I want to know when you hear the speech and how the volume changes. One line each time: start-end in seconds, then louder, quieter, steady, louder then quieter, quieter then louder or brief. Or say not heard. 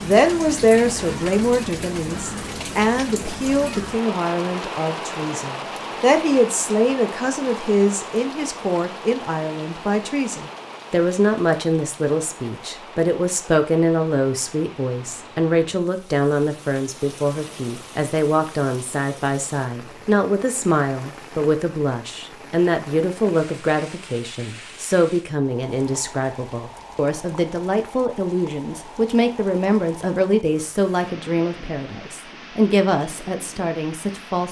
0.0-34.4 steady.